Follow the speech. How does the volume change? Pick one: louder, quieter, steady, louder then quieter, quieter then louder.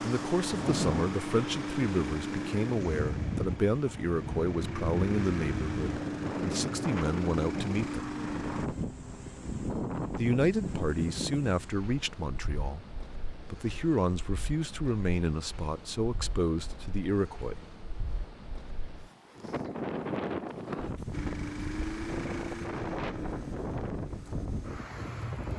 steady.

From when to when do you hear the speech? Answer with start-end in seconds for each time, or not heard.
0.0-8.1, 10.2-17.6.